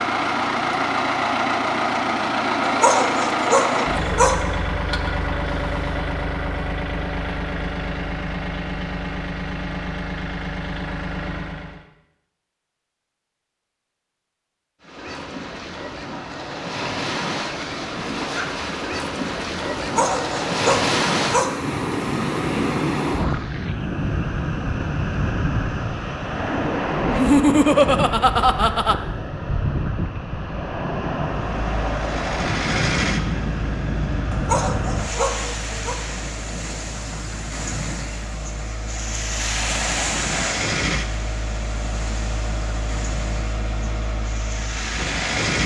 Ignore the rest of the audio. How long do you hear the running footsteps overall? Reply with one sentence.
You can't hear the running footsteps here.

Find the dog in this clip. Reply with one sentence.
The dog can be heard from 2.6 to 4.4 s, from 19.8 to 21.6 s and from 34.3 to 36.0 s.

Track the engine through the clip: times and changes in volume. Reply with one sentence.
The engine can be heard from 0.0 to 11.8 s, getting quieter; and from 31.2 to 45.6 s, getting quieter then louder.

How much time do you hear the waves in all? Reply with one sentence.
You can hear the waves for 31 seconds altogether.